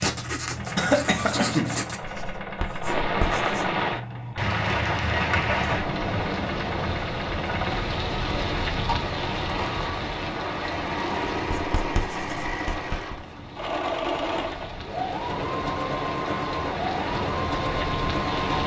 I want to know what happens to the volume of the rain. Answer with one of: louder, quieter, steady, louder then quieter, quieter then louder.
quieter then louder.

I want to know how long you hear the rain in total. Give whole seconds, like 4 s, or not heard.
16 s.